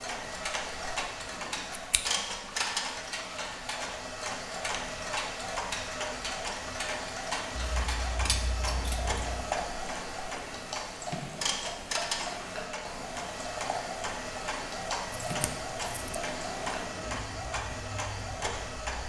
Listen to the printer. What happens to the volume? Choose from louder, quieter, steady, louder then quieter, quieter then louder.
steady.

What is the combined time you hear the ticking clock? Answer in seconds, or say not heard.
19 s.